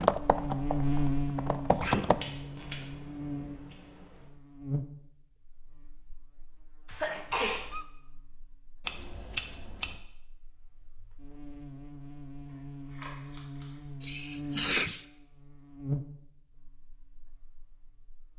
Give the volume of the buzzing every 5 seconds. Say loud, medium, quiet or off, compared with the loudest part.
loud, quiet, medium, medium.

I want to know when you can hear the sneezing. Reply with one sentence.
You can hear the sneezing from 1.8 to 2.4 s, from 6.8 to 7.8 s and from 14.0 to 14.9 s.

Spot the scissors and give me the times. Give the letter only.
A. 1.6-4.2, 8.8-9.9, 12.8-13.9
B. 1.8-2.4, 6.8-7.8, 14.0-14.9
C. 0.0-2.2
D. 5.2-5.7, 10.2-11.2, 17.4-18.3
A.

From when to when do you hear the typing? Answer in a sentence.
You can hear the typing from 0.0 to 2.2 s.